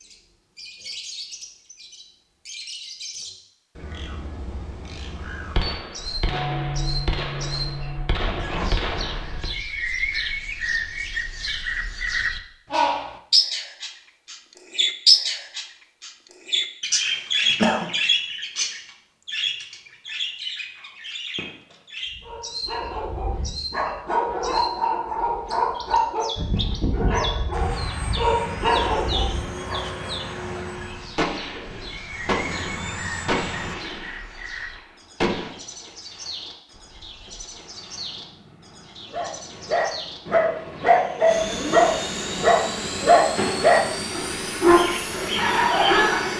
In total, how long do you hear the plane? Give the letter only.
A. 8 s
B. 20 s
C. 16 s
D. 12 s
C.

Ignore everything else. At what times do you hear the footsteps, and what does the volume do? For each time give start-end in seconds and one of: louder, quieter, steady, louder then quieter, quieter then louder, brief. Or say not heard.
not heard.